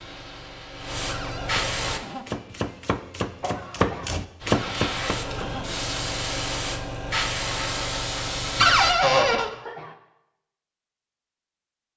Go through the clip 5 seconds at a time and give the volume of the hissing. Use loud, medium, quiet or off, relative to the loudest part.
loud, loud, off.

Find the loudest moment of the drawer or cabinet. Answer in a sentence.
The volume of the drawer or cabinet peaks at 9 seconds.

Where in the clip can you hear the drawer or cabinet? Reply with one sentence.
You can hear the drawer or cabinet from 1.1 to 2.2 s, from 4.5 to 5.7 s and from 8.6 to 9.5 s.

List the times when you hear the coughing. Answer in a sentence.
The coughing can be heard from 3.4 to 4.2 s and from 9.2 to 9.9 s.